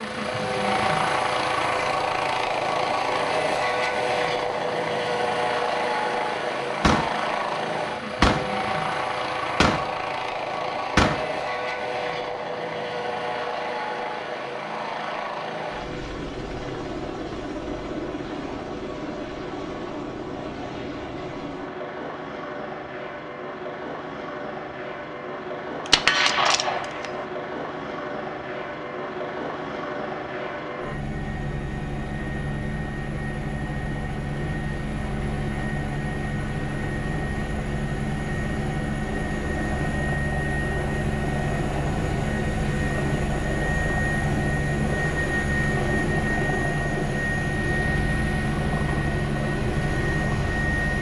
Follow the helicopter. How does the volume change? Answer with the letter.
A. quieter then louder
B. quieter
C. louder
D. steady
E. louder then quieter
A.